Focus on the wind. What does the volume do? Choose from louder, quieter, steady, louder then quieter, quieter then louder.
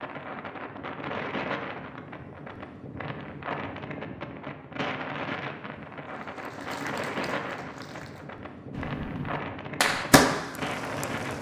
steady.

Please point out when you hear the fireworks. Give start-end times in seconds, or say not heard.
8.8-11.3.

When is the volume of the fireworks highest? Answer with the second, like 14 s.
10 s.